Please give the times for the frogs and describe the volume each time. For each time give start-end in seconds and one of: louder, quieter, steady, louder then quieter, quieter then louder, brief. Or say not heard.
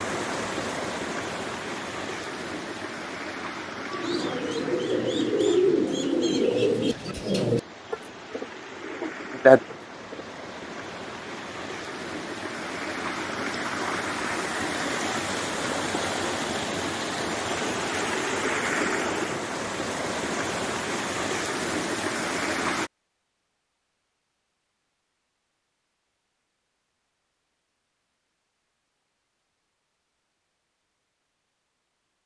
not heard.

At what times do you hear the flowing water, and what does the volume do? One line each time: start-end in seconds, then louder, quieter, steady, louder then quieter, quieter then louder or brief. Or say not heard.
0.0-22.9 quieter then louder.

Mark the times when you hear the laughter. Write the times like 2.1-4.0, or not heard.
not heard.